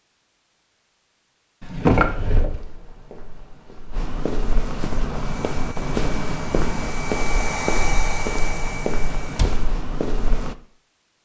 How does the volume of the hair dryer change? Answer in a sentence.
The loudness of the hair dryer goes up, then down.